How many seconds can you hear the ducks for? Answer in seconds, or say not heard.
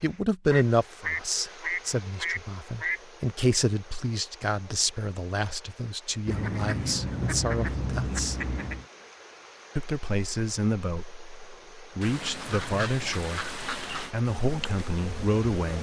7 s.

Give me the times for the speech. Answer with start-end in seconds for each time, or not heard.
0.0-8.3, 9.8-15.7.